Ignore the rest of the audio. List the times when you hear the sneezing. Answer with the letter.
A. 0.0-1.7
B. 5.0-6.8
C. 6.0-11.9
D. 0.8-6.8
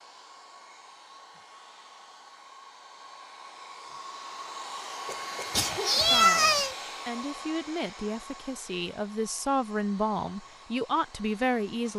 B.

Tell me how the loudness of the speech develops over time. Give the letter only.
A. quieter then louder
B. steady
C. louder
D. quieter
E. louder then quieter
C.